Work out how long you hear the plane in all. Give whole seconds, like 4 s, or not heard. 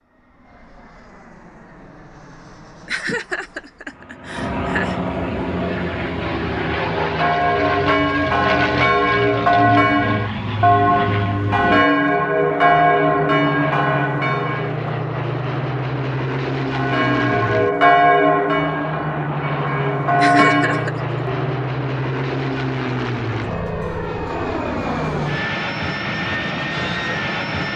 28 s.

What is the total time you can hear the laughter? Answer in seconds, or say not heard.
3 s.